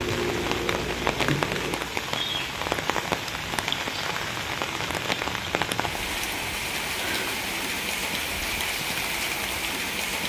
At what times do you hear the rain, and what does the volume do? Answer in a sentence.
You can hear the rain from 0.0 to 10.2 s, at a steady volume.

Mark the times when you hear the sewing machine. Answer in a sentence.
The sewing machine can be heard from 0.0 to 1.8 s.